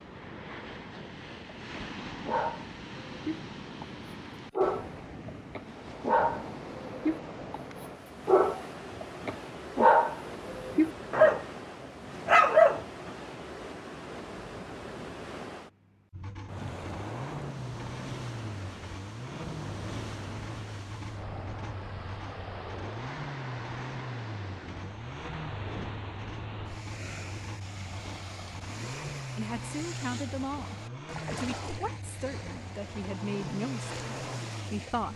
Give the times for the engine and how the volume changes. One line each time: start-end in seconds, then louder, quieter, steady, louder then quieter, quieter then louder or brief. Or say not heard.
16.1-35.1 steady.